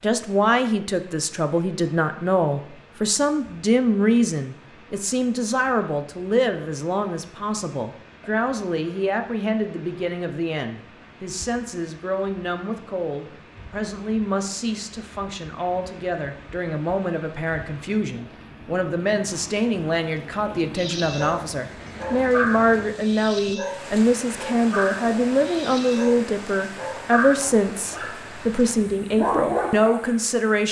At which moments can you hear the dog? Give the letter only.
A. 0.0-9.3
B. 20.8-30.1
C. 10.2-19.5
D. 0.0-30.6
B.